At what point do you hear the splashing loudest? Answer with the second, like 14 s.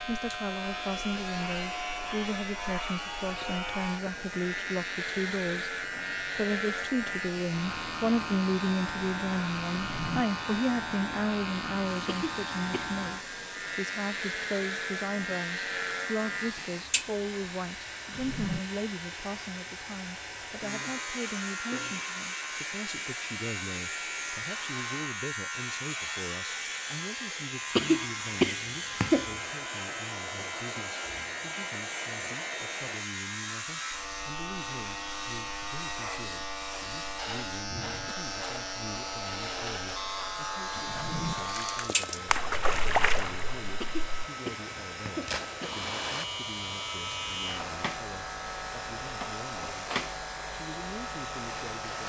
43 s.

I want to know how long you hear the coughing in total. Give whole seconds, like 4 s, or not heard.
4 s.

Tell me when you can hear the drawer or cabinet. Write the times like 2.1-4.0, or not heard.
9.8-10.2, 18.1-18.6, 40.9-41.4.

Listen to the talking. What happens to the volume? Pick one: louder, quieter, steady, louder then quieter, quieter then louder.
quieter.